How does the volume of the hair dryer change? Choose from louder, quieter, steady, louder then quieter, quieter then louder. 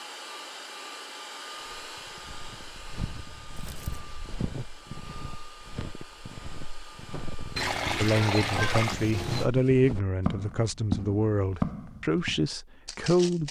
quieter.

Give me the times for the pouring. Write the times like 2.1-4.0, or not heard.
3.1-4.0, 7.5-9.5.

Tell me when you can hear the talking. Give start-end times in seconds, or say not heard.
8.0-13.4.